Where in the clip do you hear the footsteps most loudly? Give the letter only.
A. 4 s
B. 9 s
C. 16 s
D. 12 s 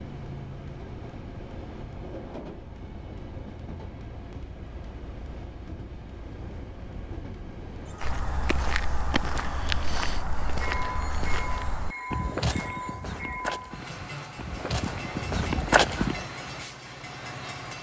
C.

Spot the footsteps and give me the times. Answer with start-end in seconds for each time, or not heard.
8.0-16.3.